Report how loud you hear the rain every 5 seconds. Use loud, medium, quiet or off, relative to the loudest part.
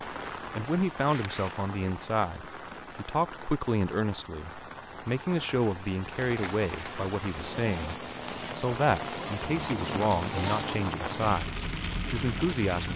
medium, loud, loud.